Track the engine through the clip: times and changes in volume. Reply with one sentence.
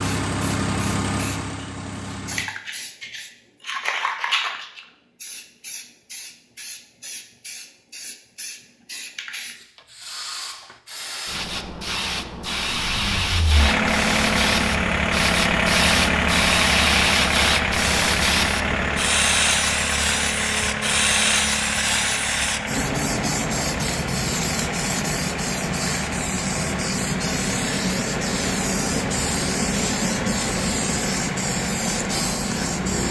You can hear the engine briefly from 0.0 to 2.5 s; and from 12.7 to 33.0 s, getting quieter.